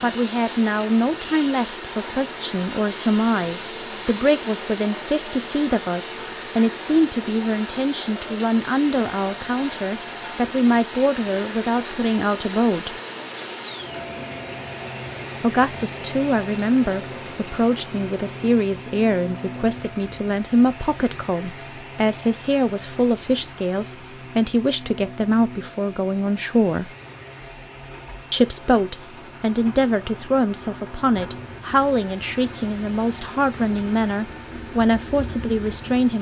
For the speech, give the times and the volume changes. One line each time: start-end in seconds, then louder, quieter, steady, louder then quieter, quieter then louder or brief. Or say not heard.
0.0-12.9 steady
15.4-26.9 steady
28.3-36.1 steady.